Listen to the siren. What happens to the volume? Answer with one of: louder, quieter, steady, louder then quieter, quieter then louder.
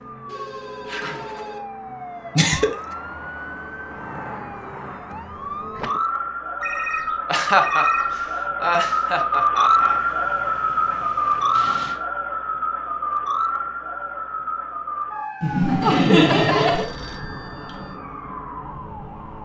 louder then quieter.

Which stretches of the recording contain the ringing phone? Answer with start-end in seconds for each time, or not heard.
0.3-1.6, 6.6-8.3, 15.8-17.9.